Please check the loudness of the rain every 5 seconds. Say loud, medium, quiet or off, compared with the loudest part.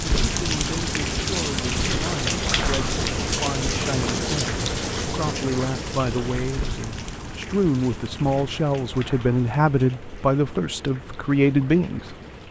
loud, medium, quiet.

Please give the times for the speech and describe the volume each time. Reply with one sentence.
The speech can be heard from 0.2 to 12.2 s, getting louder.